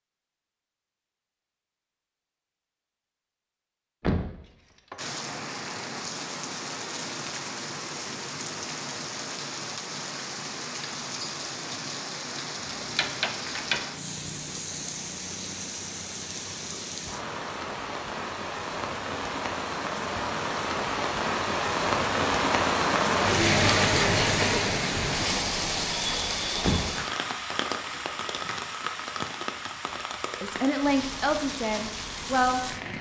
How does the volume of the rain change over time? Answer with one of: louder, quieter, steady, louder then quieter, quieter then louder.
louder then quieter.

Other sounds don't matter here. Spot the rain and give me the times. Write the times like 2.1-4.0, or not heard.
5.0-32.9.